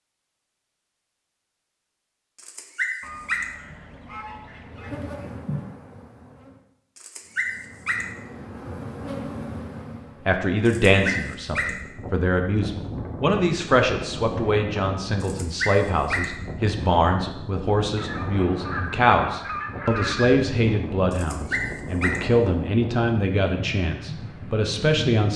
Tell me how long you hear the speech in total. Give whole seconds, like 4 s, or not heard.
15 s.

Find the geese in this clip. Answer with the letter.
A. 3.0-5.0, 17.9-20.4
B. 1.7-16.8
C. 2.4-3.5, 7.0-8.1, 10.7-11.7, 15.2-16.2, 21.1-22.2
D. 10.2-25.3
A.